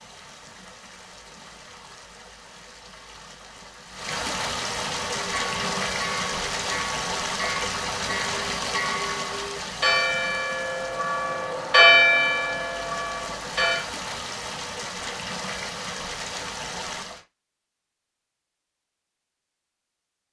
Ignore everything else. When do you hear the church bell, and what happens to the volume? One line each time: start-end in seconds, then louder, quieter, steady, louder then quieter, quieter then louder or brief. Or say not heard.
5.2-13.8 louder.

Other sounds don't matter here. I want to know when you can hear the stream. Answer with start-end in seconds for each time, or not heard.
0.0-17.2.